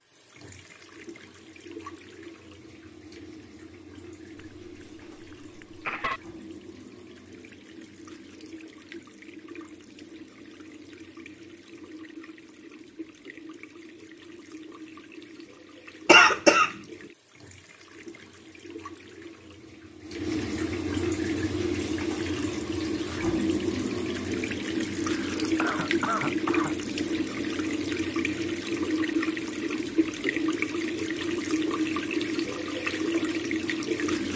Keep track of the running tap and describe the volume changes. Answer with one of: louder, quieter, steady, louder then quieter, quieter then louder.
louder.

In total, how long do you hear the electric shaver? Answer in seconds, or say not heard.
not heard.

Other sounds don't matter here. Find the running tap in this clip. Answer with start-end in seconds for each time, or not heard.
0.0-34.3.